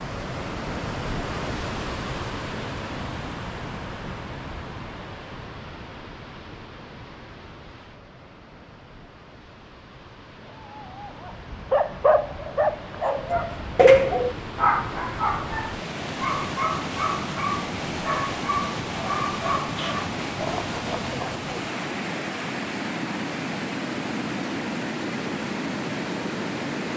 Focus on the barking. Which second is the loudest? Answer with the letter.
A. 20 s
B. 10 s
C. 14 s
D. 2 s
C.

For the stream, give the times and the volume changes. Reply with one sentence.
You can hear the stream from 0.0 to 26.9 s, getting quieter then louder.